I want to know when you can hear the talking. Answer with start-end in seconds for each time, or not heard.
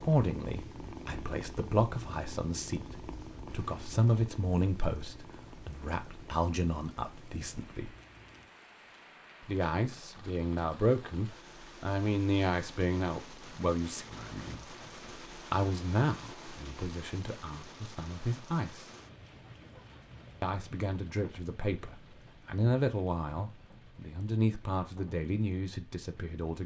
0.0-8.0, 9.4-18.9, 20.4-26.6.